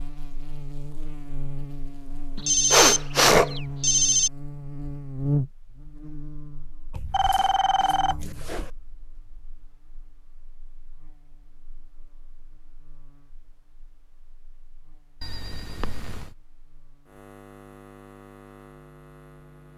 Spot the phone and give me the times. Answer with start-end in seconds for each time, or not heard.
2.4-4.3, 6.9-8.7, 15.2-16.3.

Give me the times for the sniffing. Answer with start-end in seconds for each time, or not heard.
2.7-3.5.